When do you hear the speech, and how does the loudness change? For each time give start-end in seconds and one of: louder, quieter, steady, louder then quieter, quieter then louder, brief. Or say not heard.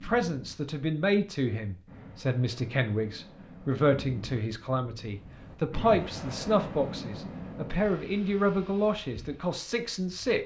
0.0-10.4 steady.